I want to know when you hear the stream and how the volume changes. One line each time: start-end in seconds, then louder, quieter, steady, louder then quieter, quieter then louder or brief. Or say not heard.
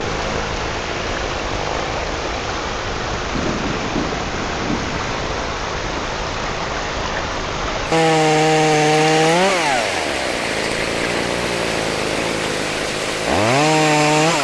0.0-14.4 steady.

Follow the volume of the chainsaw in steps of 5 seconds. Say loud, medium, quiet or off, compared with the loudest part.
medium, loud, loud.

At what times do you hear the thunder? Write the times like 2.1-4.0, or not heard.
3.3-5.3.